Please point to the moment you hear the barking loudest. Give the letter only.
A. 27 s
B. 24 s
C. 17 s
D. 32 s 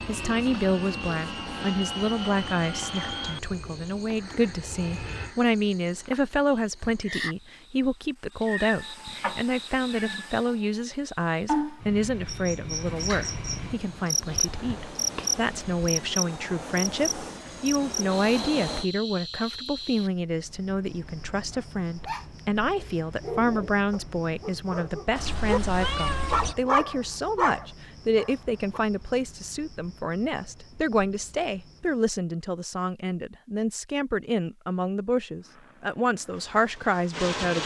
A.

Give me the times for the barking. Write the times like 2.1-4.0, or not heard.
21.5-28.8.